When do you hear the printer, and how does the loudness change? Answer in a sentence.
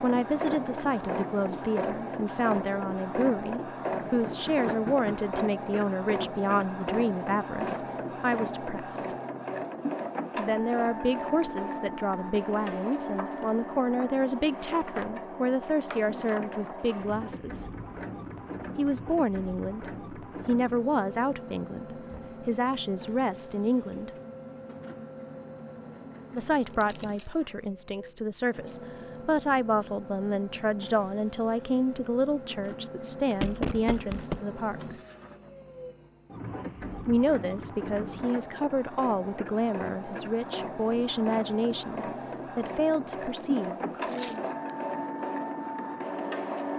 The printer can be heard from 0.0 to 46.7 s, getting quieter then louder.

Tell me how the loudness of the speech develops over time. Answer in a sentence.
The volume of the speech stays about the same.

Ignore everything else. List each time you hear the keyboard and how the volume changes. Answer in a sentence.
The keyboard can't be heard in this clip.